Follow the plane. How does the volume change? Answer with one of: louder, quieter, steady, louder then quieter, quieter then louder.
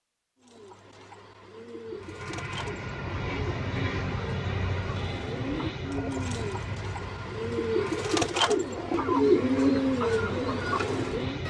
quieter.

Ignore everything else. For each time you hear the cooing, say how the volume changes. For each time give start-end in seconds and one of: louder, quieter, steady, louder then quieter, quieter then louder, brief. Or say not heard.
0.4-11.4 louder.